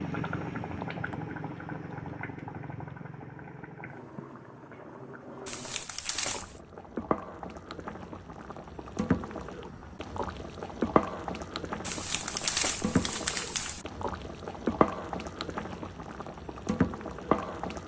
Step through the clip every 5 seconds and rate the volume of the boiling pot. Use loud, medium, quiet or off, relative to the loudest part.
medium, medium, loud, loud.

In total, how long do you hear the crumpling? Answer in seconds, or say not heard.
3 s.